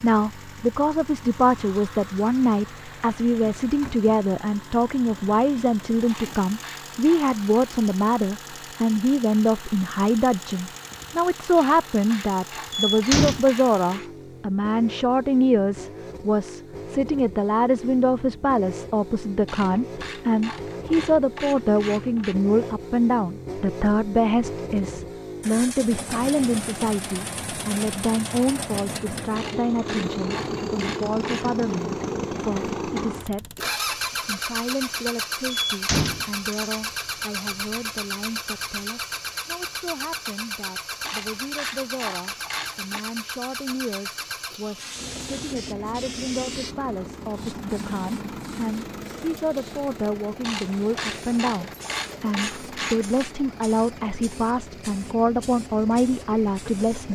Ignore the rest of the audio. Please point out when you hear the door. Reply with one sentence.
You can hear the door from 12.7 to 13.4 s and from 35.5 to 36.8 s.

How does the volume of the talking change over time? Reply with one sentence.
The volume of the talking goes down, then up.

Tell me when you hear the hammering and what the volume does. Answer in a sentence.
You can't hear the hammering here.